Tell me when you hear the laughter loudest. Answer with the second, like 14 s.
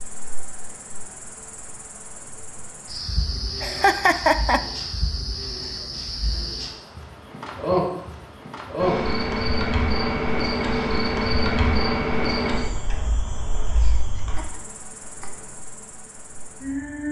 4 s.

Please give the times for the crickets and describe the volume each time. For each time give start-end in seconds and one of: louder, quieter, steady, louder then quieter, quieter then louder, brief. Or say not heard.
0.0-17.0 louder then quieter.